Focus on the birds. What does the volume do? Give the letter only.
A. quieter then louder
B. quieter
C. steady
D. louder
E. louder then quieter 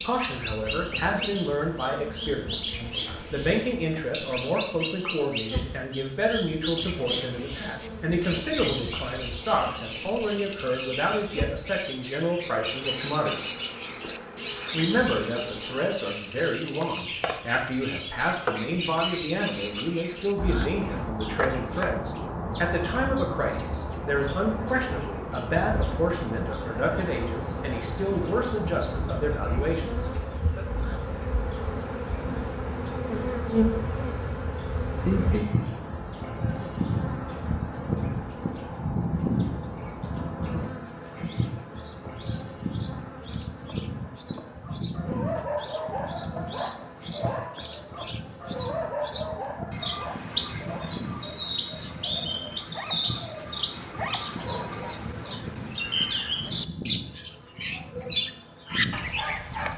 A.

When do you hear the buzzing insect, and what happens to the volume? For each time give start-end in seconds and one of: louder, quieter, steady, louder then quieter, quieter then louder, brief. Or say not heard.
0.0-59.7 louder then quieter.